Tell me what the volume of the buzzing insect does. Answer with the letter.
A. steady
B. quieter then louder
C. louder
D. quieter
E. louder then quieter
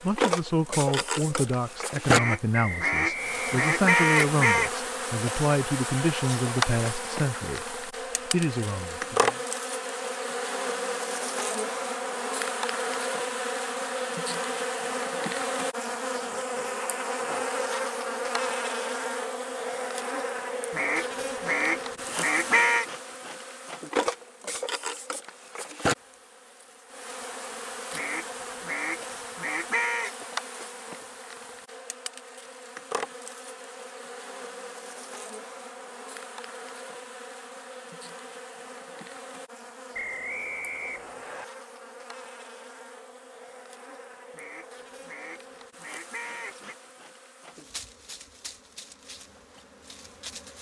D.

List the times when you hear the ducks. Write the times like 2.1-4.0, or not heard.
2.0-4.7, 20.7-22.9, 27.9-30.1, 44.4-46.8.